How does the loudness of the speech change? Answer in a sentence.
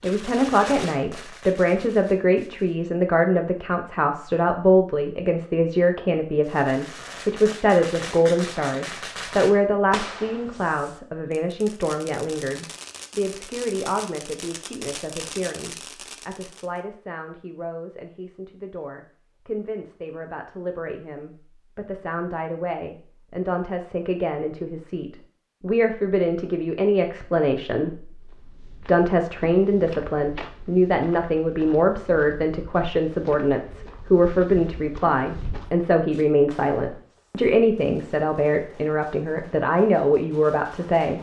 The volume of the speech goes down, then up.